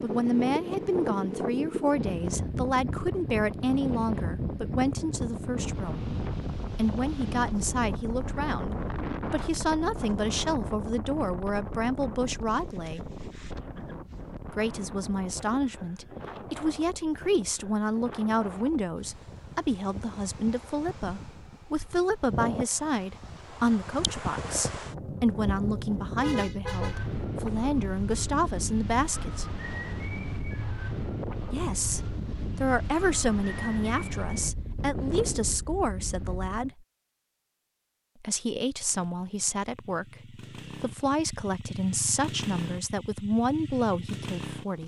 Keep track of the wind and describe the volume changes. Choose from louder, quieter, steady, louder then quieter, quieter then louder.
quieter then louder.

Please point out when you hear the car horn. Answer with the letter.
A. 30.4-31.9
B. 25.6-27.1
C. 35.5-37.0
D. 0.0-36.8
B.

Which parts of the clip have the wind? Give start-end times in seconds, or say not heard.
0.0-36.8.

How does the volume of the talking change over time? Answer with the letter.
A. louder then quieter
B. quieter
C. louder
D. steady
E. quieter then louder
D.